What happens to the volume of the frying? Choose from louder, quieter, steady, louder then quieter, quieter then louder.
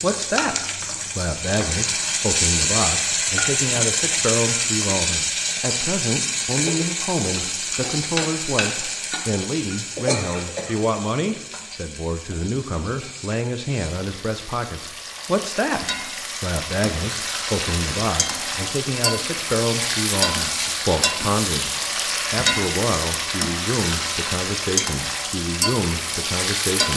quieter then louder.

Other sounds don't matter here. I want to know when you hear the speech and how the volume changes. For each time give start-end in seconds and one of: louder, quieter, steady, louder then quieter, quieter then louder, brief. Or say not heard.
0.0-0.6 brief
1.1-21.7 steady
22.3-26.9 steady.